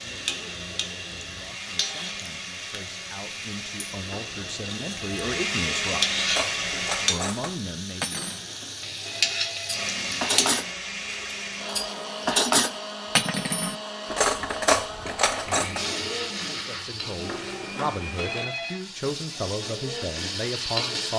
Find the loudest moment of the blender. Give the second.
6 s.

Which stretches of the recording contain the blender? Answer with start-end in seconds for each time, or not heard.
0.0-7.2, 9.7-18.5.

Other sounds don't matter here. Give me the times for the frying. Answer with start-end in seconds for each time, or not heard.
0.0-10.5, 15.8-21.1.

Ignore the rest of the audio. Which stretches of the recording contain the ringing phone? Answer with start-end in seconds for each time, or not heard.
4.0-5.4, 8.1-9.9, 17.2-18.8.